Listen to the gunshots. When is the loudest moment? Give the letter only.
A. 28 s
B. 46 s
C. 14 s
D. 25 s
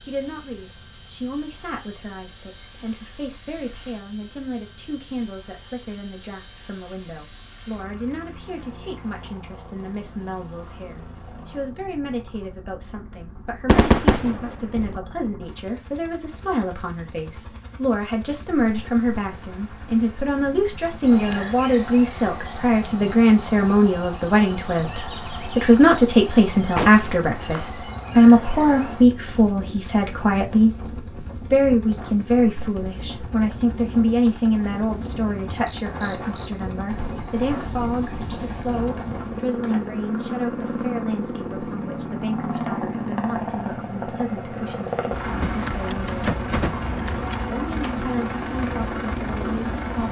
C.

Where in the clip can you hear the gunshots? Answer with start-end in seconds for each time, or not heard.
13.7-15.0, 26.8-27.7, 45.4-48.0.